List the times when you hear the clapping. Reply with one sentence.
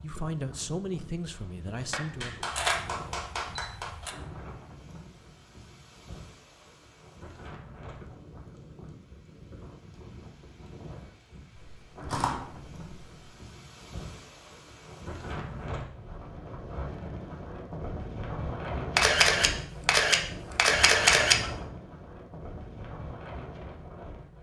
You can hear the clapping from 1.9 to 4.1 s.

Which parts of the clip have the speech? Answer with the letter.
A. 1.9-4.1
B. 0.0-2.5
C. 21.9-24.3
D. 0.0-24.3
B.